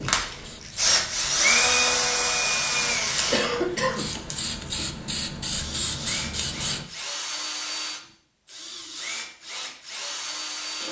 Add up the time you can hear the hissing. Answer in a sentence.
The hissing can be heard for 7 seconds in total.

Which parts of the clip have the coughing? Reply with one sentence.
The coughing can be heard from 3.3 to 4.2 s.